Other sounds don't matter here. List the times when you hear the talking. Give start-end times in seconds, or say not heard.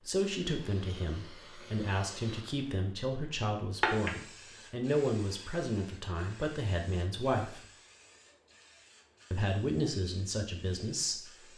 0.1-7.7, 9.3-11.5.